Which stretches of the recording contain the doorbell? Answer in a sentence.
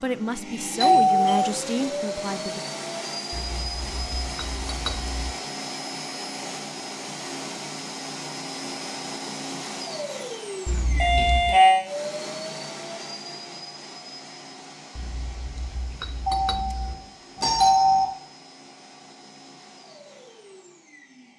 You can hear the doorbell from 0.8 to 1.5 s, from 10.9 to 11.8 s and from 16.2 to 18.1 s.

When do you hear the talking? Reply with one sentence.
The talking can be heard from 0.0 to 2.6 s.